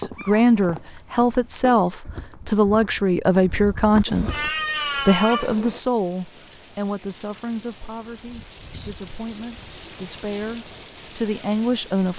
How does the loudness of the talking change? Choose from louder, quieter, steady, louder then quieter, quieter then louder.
quieter then louder.